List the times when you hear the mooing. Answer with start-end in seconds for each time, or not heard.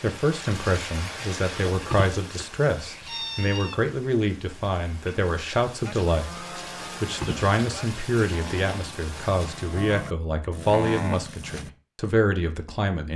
5.8-11.7.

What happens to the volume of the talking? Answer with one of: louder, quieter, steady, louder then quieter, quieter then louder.
steady.